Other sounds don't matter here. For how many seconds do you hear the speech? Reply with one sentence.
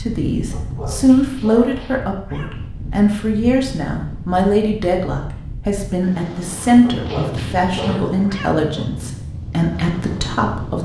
The speech can be heard for 11 seconds in total.